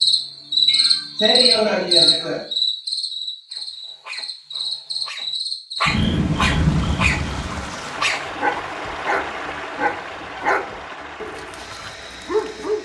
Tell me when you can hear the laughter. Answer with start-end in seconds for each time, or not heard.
0.7-2.5.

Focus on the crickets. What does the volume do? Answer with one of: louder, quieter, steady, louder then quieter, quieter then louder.
quieter then louder.